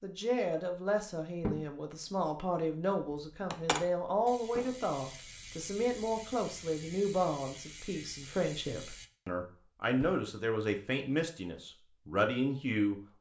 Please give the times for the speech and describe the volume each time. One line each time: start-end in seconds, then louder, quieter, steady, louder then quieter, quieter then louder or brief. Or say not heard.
0.0-13.1 steady.